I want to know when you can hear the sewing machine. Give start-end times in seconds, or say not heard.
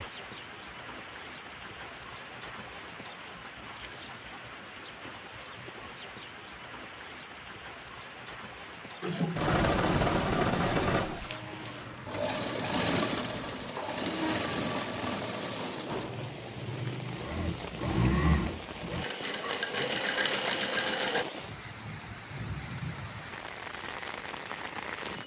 9.0-21.2.